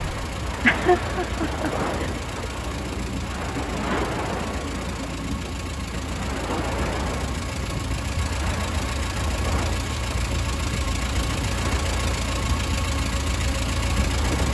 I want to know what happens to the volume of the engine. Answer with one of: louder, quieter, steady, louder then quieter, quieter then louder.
louder.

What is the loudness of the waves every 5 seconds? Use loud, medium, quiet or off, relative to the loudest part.
loud, loud, medium.